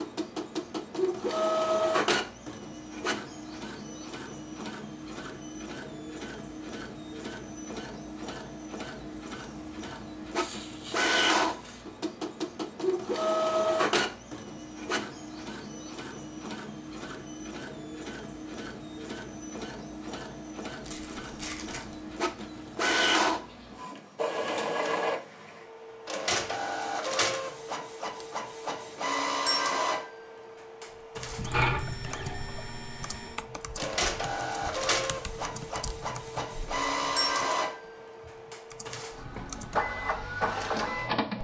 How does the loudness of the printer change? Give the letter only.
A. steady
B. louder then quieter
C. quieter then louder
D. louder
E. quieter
A.